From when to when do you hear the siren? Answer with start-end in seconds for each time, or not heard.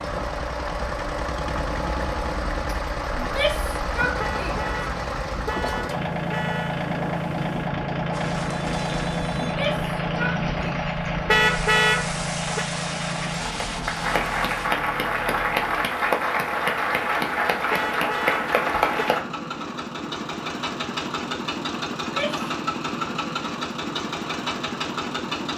not heard.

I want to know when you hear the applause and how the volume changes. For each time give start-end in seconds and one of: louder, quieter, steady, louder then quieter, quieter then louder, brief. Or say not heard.
8.1-19.2 louder.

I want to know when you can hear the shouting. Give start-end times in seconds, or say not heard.
3.1-4.7, 9.4-10.7, 22.0-22.5.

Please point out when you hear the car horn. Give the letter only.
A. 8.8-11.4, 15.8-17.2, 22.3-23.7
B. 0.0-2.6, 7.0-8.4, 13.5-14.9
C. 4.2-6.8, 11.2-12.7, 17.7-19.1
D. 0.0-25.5
C.